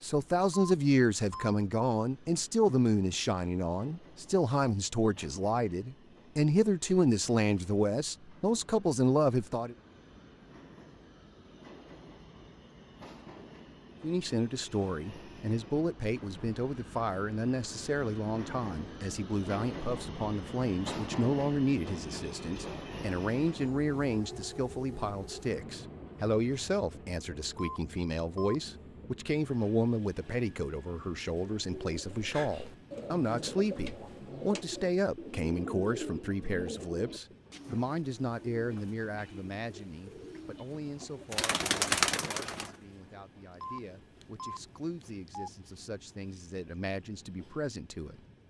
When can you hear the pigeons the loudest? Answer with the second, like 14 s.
42 s.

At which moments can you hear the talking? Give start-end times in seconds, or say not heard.
0.0-9.8, 14.0-48.1.